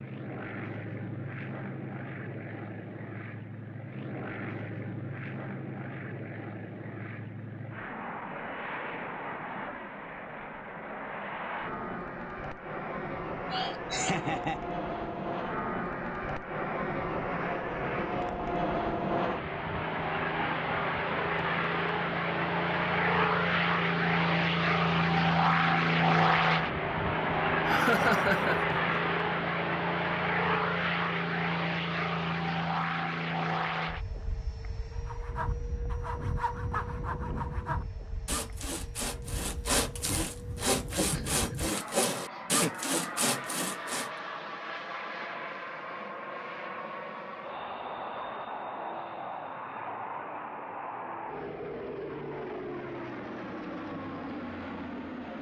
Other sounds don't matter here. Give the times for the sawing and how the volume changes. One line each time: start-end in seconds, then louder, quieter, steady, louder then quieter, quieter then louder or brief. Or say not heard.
35.0-44.1 louder.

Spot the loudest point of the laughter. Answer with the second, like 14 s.
28 s.